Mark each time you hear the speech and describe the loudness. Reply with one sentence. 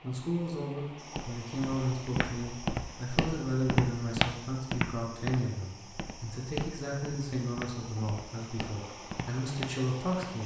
You can hear the speech from 0.0 to 10.4 s, at a steady volume.